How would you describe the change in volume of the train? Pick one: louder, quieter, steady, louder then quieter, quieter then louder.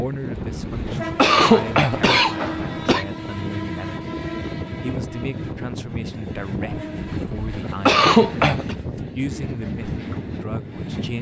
steady.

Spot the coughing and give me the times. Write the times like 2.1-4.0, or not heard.
0.3-3.0, 7.0-8.8.